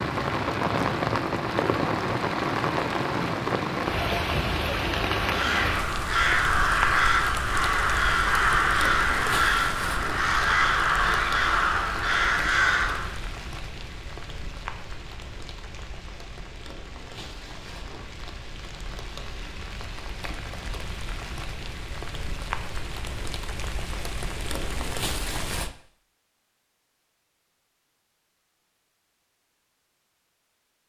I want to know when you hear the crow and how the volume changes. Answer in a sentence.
The crow can be heard from 5.2 to 13.2 s, at a steady volume.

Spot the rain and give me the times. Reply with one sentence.
You can hear the rain from 0.0 to 25.8 s.